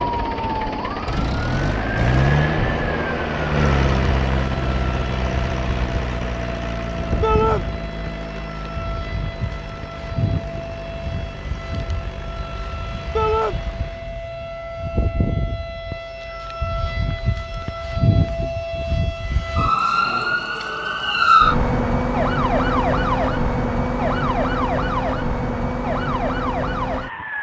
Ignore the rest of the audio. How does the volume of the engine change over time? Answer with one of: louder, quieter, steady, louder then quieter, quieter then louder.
quieter.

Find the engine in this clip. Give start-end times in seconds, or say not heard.
0.0-14.2.